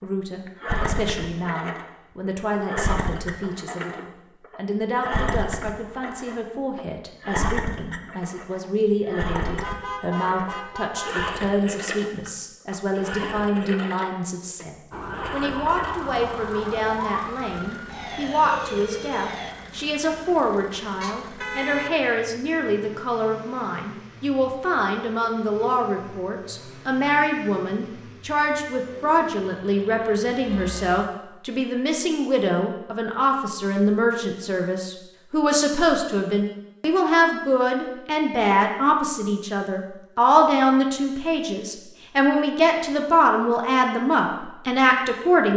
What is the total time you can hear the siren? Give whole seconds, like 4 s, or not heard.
5 s.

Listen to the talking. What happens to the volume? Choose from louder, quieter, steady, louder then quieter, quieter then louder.
louder.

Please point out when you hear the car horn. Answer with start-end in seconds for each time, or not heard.
9.4-11.2, 21.0-21.9, 30.4-31.0.